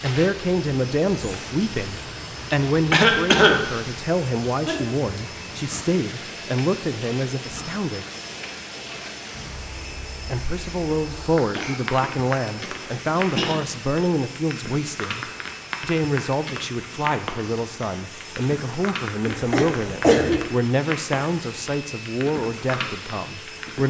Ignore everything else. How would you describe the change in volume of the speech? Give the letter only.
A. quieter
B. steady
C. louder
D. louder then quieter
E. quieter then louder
B.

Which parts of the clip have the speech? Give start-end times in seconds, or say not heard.
0.0-8.1, 10.2-23.8.